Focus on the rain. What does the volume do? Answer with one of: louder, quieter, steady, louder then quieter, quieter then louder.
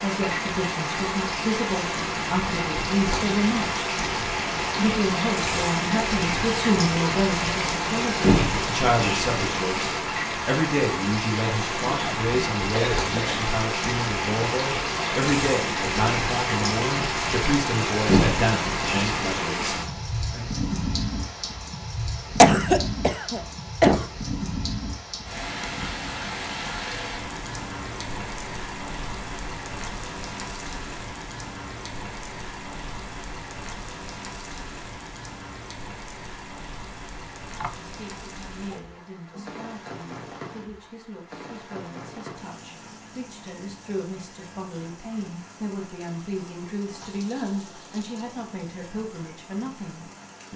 quieter.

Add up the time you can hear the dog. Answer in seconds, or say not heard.
not heard.